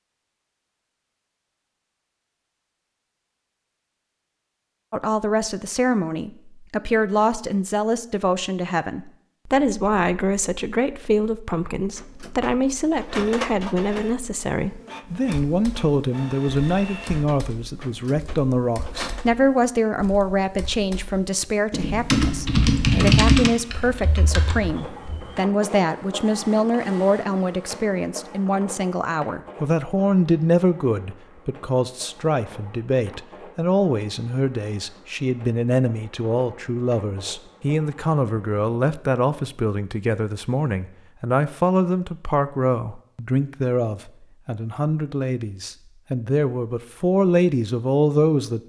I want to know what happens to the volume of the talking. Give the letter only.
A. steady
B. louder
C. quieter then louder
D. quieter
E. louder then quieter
A.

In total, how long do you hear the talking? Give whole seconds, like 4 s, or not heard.
44 s.